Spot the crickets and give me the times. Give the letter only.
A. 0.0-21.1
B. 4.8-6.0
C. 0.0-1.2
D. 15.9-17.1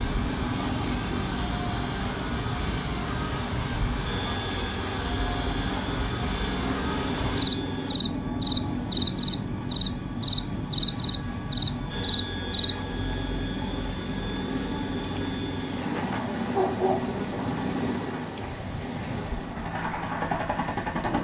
A.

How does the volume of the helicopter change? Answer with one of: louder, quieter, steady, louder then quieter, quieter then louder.
steady.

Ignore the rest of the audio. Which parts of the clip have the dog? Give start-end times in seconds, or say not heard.
15.9-17.1.